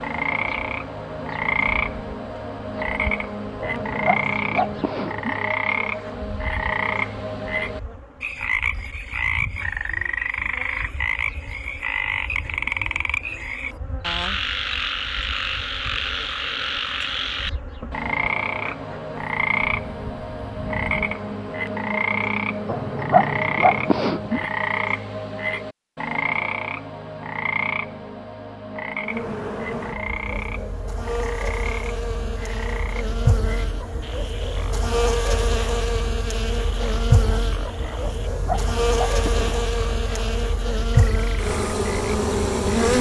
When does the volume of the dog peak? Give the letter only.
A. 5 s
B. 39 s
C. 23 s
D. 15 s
C.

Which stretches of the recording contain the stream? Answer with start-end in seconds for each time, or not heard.
not heard.